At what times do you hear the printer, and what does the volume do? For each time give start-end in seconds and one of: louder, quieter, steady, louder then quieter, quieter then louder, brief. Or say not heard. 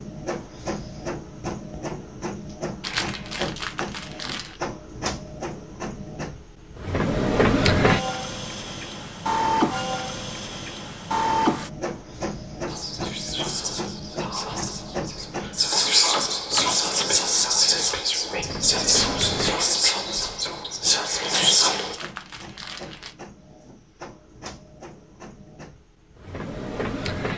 0.0-27.3 louder then quieter.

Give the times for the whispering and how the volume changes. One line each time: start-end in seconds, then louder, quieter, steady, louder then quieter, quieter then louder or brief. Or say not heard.
12.7-21.9 louder.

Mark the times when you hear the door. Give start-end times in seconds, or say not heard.
16.1-17.1.